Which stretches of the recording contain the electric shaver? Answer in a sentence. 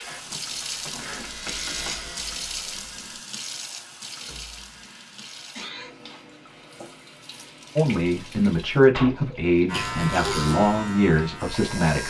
The electric shaver can be heard from 0.0 to 3.2 s and from 9.7 to 12.0 s.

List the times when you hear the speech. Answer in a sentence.
You can hear the speech from 7.8 to 12.0 s.